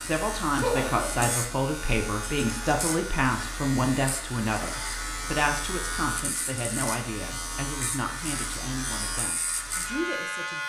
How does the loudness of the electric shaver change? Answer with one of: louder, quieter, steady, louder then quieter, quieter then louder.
steady.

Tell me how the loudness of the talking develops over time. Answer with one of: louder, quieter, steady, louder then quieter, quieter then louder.
quieter.